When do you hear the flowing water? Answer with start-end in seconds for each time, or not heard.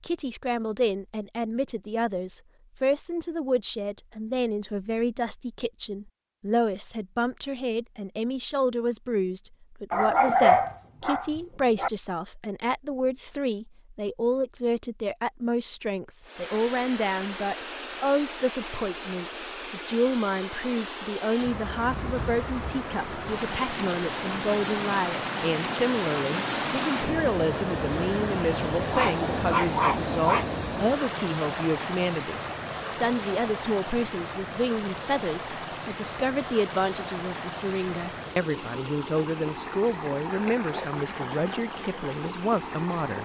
16.2-43.2.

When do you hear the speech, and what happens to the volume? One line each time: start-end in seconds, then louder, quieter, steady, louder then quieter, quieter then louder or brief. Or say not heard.
0.0-43.2 steady.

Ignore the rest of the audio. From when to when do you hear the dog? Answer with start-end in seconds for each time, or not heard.
9.9-11.9, 28.9-30.4.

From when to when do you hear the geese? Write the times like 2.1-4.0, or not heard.
not heard.